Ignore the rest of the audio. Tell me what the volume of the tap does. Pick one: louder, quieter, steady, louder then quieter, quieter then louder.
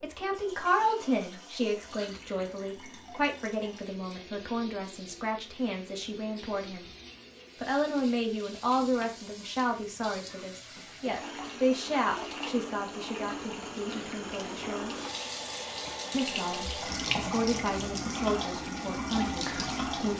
louder.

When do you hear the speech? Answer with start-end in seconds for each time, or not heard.
0.0-6.8, 7.5-14.9, 16.1-20.1.